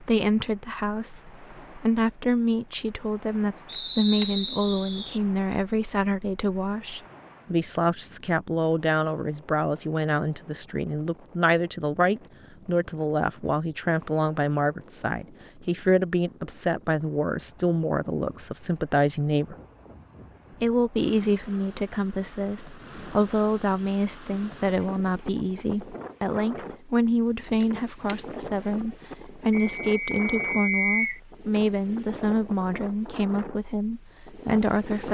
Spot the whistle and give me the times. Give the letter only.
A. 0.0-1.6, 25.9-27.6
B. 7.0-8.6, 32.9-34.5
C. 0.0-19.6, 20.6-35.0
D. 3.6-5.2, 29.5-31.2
D.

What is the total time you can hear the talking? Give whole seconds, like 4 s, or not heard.
34 s.